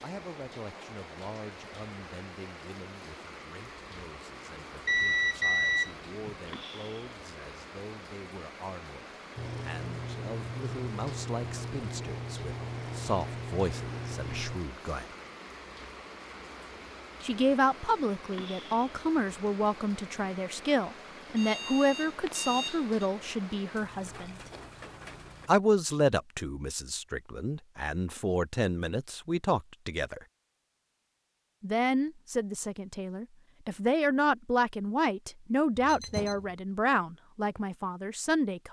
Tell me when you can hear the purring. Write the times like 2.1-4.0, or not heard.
9.3-14.6.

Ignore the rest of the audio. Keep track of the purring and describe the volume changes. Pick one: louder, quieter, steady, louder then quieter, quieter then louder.
steady.